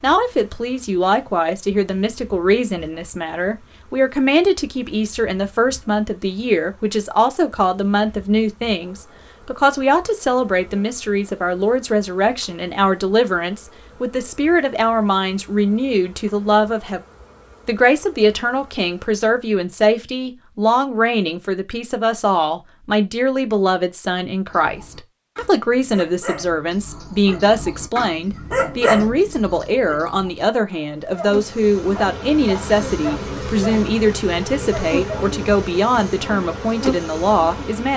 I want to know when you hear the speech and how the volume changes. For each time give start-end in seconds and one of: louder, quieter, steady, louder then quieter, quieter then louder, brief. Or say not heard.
0.0-17.0 steady
17.6-37.9 steady.